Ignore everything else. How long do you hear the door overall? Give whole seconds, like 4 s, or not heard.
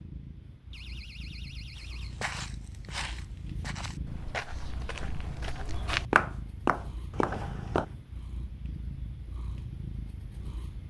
2 s.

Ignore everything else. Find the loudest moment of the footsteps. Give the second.
6 s.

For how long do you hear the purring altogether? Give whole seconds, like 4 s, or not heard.
11 s.